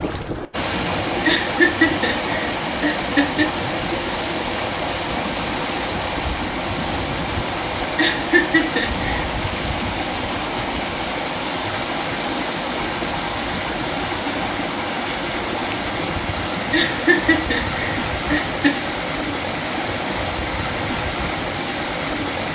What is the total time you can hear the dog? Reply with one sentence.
The dog can't be heard in this clip.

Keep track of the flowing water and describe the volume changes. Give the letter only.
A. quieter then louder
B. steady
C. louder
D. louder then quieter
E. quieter
B.